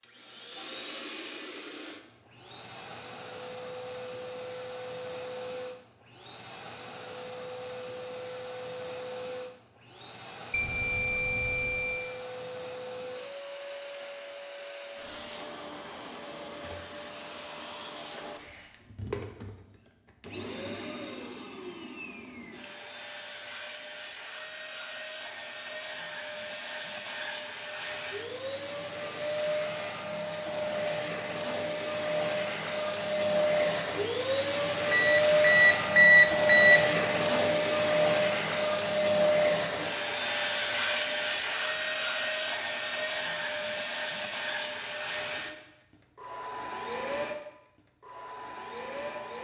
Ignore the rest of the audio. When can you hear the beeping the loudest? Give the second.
36 s.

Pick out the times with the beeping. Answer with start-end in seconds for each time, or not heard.
10.5-11.9, 34.9-36.9.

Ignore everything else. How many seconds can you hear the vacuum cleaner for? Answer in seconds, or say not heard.
49 s.